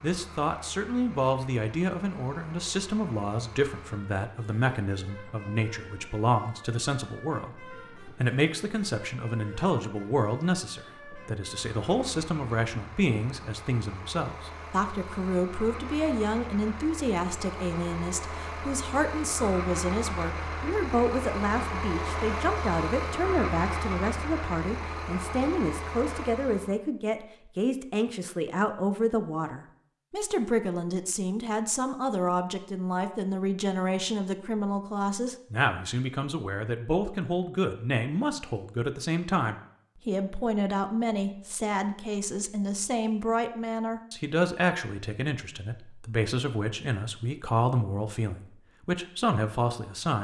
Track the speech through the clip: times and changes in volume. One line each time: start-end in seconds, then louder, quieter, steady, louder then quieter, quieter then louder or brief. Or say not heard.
0.0-50.1 steady.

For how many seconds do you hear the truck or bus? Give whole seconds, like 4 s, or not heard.
27 s.